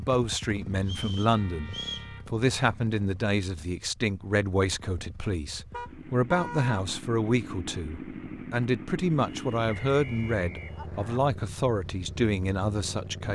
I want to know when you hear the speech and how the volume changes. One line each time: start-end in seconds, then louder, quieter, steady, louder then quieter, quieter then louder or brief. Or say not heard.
0.0-13.3 steady.